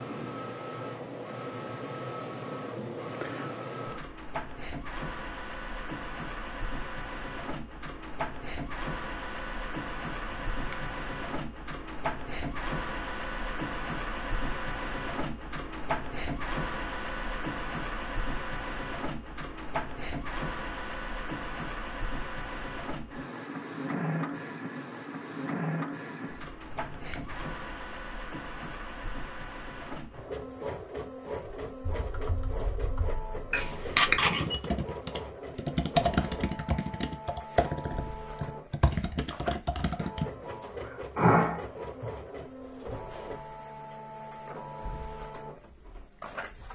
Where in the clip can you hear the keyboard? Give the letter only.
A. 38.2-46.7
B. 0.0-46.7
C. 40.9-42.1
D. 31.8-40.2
D.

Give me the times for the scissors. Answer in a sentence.
The scissors can be heard from 10.2 to 11.4 s, from 26.7 to 27.6 s and from 33.5 to 34.6 s.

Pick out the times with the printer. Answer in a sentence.
You can hear the printer from 0.0 to 46.7 s.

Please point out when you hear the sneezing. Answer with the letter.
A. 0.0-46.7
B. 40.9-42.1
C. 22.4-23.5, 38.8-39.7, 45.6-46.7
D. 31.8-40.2
B.